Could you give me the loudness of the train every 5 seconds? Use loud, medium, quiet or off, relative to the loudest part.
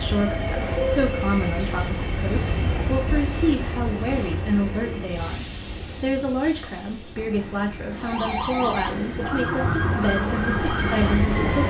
loud, medium, loud.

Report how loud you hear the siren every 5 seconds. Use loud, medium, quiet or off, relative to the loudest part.
off, loud, loud.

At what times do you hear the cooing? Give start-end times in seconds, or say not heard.
not heard.